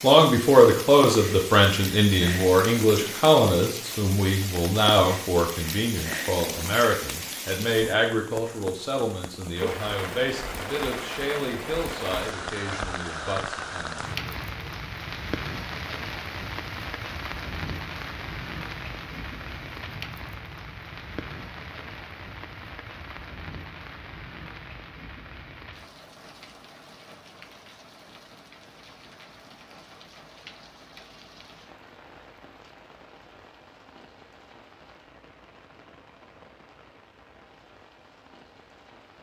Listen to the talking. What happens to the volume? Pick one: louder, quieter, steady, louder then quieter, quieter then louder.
quieter.